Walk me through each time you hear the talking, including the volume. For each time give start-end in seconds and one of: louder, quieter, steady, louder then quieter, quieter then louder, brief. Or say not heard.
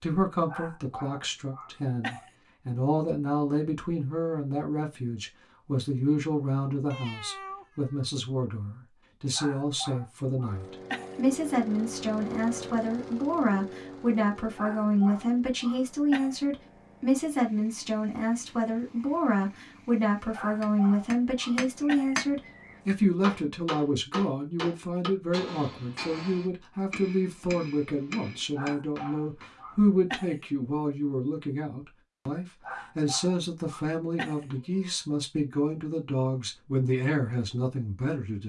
0.0-38.4 steady.